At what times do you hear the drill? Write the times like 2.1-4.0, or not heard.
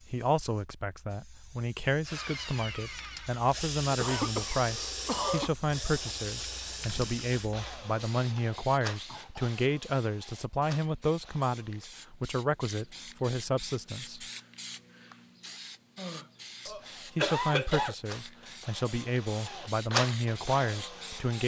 2.0-11.9, 16.8-21.4.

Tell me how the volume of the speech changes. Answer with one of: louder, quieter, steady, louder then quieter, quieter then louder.
steady.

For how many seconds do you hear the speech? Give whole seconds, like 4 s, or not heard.
19 s.